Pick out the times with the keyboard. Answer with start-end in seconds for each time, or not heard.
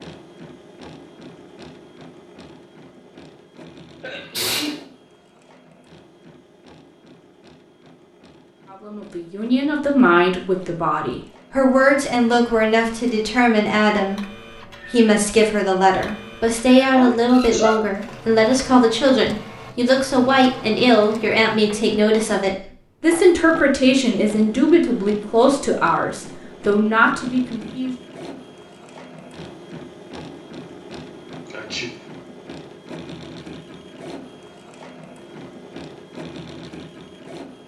not heard.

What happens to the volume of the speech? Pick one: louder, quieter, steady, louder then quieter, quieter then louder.
steady.